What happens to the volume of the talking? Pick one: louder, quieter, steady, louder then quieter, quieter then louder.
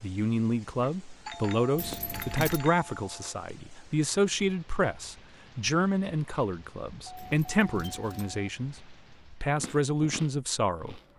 steady.